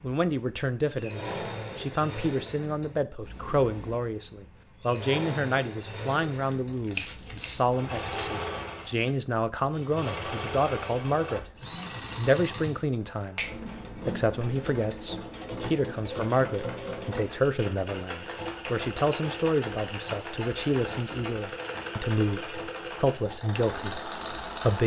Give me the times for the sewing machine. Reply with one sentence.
You can hear the sewing machine from 0.0 to 24.8 s.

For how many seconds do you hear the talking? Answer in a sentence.
The talking can be heard for 24 seconds in total.